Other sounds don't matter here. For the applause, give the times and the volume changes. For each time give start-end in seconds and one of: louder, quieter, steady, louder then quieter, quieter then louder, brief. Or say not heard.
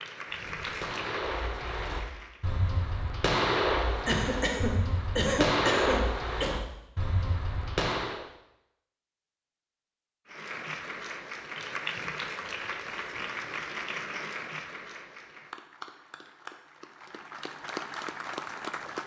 0.0-2.5 brief
10.2-19.0 quieter then louder.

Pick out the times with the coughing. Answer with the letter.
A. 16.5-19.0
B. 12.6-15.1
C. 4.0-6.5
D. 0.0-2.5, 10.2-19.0
C.